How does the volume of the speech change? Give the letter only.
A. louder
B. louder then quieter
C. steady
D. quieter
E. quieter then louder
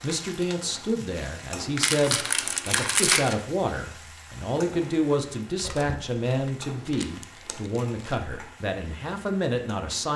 C.